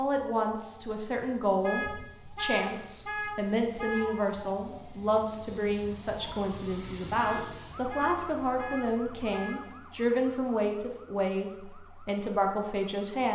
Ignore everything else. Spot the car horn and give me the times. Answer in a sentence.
You can hear the car horn from 1.6 to 4.1 s and from 7.2 to 9.7 s.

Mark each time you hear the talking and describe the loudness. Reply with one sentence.
The talking can be heard from 0.0 to 13.3 s, at a steady volume.